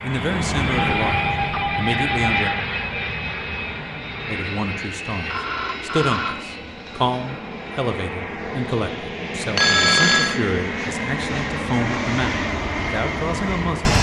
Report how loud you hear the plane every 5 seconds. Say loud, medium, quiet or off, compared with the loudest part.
loud, medium, loud.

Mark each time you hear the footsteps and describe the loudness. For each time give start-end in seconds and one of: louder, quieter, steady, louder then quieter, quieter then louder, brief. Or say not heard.
not heard.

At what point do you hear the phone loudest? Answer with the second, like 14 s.
10 s.